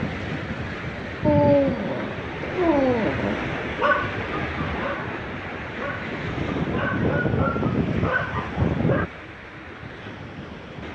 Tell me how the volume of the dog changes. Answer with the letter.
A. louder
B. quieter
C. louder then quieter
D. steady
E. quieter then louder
E.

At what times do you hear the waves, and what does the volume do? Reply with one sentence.
The waves can be heard from 0.0 to 10.8 s, getting quieter.